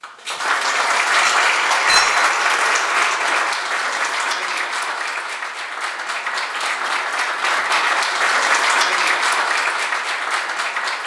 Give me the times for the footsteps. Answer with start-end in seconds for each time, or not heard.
not heard.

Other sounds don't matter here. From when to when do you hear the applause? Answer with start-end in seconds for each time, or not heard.
0.0-11.0.